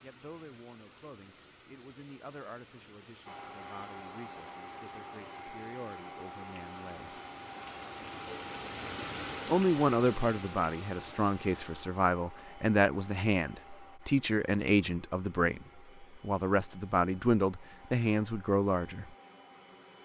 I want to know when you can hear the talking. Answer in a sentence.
The talking can be heard from 0.0 to 7.2 s and from 9.4 to 19.1 s.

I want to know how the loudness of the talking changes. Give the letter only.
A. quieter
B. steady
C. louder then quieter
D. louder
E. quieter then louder
D.